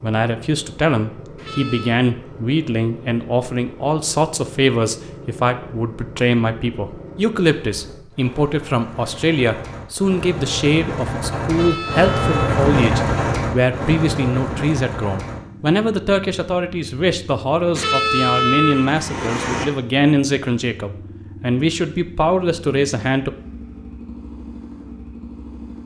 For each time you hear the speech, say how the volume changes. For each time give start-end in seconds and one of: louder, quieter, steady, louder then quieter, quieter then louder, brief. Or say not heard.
0.0-23.3 steady.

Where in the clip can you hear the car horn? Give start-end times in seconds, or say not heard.
1.4-2.0, 11.5-13.4, 17.8-19.6.